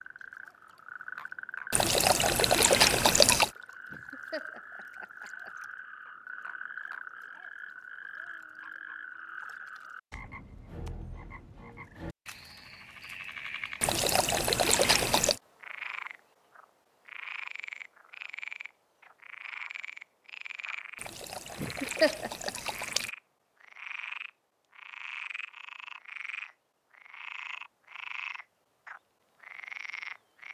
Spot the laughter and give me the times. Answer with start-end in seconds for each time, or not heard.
3.9-5.5, 21.6-22.5.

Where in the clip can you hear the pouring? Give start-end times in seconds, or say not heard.
1.7-3.5, 13.8-15.4, 21.0-23.1.